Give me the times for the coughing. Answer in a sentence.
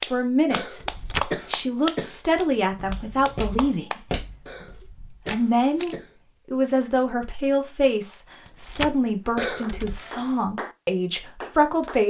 You can hear the coughing from 0.5 to 2.2 s, from 4.5 to 6.2 s and from 9.3 to 10.0 s.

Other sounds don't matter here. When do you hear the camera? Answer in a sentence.
You can hear the camera from 0.8 to 1.4 s, from 5.2 to 6.0 s, from 8.4 to 9.1 s and from 9.7 to 10.3 s.